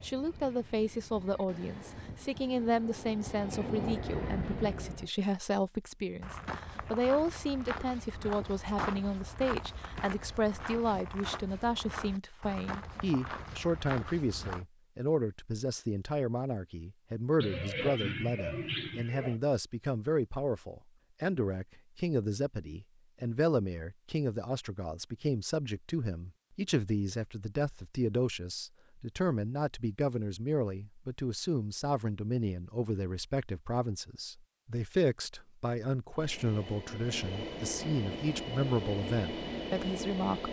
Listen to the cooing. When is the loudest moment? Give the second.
18 s.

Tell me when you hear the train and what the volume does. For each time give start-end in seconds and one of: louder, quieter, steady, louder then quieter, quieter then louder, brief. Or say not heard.
0.0-5.1 louder
36.1-40.4 louder.